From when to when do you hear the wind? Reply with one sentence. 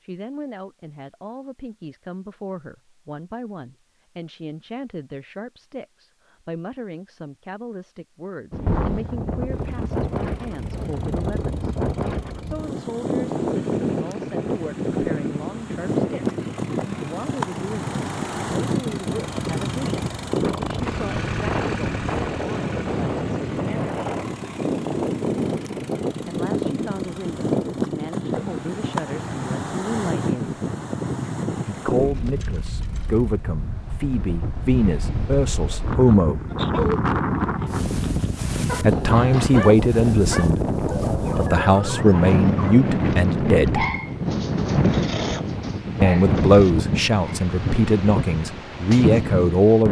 You can hear the wind from 8.5 to 49.8 s.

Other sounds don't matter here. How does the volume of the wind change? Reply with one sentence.
The loudness of the wind stays about the same.